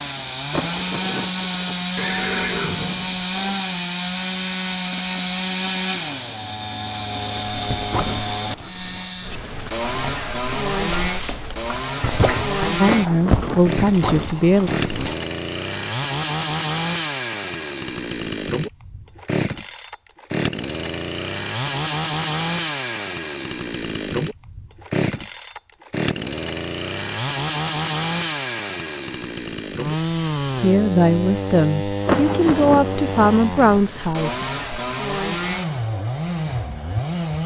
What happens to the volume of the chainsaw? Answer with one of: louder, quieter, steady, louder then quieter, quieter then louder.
steady.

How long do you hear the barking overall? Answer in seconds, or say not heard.
8 s.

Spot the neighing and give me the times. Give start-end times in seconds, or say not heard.
1.9-3.6.